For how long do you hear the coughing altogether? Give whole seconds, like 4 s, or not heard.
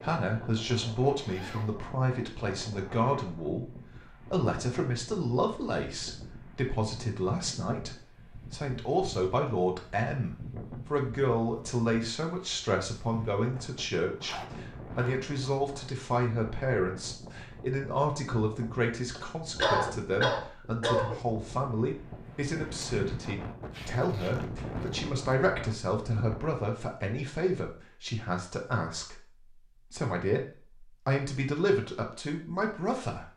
2 s.